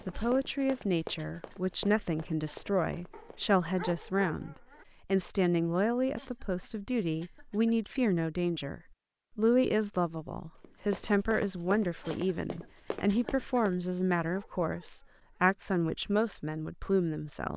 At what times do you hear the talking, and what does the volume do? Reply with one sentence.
You can hear the talking from 0.1 to 17.5 s, at a steady volume.